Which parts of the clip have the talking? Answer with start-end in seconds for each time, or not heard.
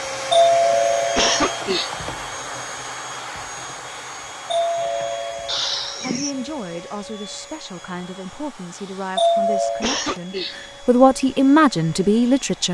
6.0-12.6.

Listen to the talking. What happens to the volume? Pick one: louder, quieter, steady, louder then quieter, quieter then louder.
louder.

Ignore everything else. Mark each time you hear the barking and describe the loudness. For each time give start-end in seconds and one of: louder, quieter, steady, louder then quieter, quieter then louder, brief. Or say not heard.
not heard.